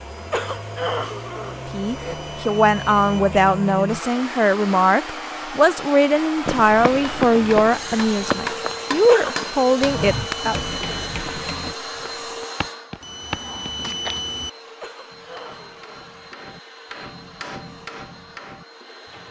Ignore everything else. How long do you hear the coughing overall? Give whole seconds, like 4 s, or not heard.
4 s.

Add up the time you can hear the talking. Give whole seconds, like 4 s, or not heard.
9 s.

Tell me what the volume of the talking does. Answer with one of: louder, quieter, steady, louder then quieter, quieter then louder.
steady.